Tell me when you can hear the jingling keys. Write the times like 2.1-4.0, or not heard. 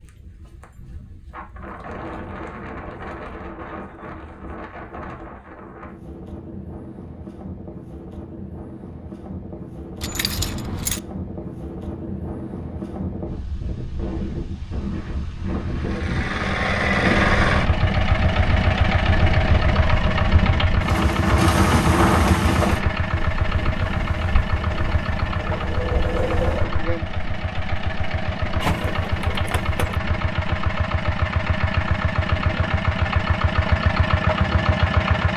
10.0-11.0, 28.6-30.0.